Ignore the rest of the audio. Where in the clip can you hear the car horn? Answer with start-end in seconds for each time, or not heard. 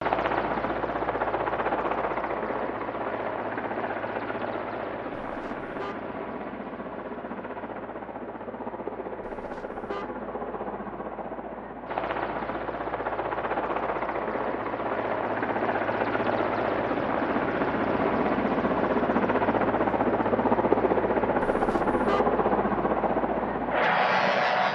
5.2-6.0, 9.2-10.1, 21.4-22.2.